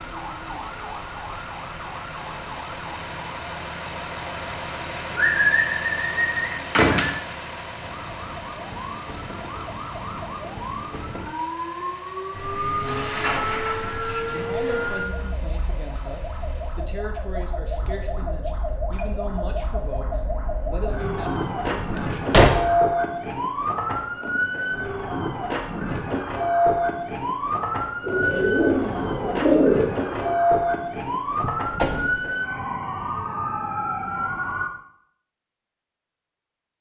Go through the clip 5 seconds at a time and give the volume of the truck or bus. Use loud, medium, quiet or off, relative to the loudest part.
loud, loud, medium, quiet, off, off, off, off.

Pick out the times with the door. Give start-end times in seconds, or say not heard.
6.8-7.2, 21.0-22.8, 31.4-32.1.